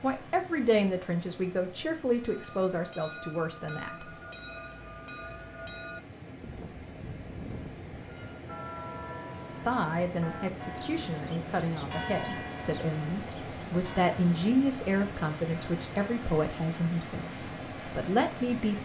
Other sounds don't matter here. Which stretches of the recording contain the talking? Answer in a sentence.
You can hear the talking from 0.0 to 4.0 s, from 9.7 to 17.2 s and from 17.9 to 18.8 s.